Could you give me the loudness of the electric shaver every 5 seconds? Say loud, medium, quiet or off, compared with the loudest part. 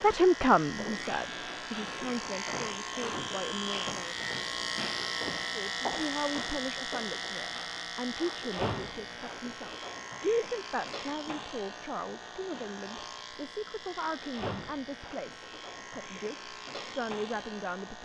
loud, loud, medium, medium.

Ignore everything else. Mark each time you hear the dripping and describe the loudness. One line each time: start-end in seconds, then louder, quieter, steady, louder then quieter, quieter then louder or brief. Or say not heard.
not heard.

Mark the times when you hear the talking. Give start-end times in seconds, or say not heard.
0.0-4.2, 5.5-18.0.